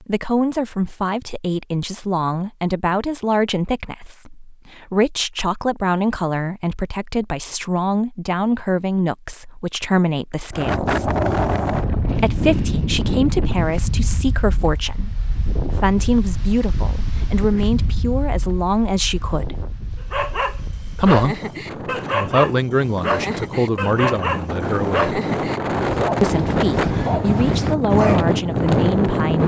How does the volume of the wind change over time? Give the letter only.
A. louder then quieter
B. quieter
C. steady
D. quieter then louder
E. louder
D.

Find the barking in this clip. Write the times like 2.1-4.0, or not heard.
20.1-28.3.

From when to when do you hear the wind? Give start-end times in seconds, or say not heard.
10.5-29.4.